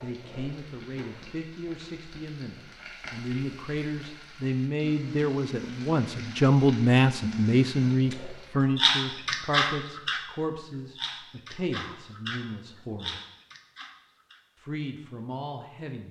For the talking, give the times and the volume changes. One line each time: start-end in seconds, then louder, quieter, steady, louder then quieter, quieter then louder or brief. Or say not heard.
0.0-13.2 louder then quieter
14.6-16.0 brief.